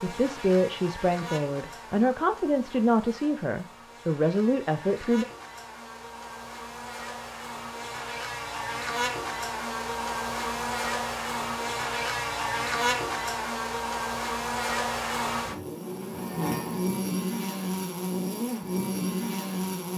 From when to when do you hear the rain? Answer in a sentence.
The rain can't be heard in this clip.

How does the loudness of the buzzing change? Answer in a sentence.
The volume of the buzzing goes up.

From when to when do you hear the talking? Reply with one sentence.
The talking can be heard from 0.0 to 5.2 s.